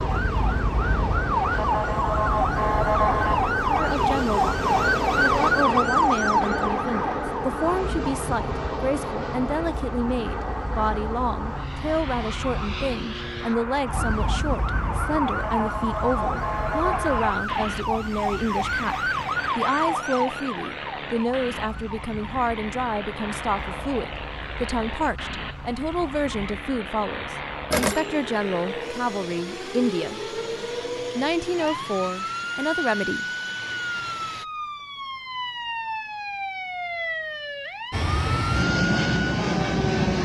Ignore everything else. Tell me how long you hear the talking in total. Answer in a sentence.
You can hear the talking for 29 seconds altogether.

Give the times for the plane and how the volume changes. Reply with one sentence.
The plane can be heard from 0.0 to 34.5 s, getting quieter; and briefly from 37.9 to 40.2 s.